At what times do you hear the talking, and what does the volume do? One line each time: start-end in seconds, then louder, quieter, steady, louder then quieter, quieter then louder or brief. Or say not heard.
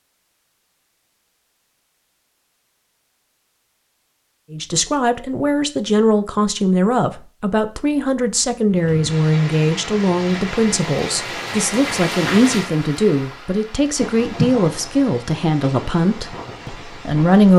4.5-17.5 steady.